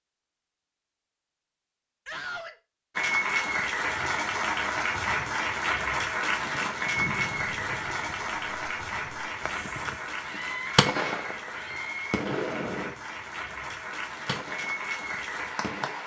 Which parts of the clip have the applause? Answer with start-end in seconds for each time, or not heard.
3.0-16.0.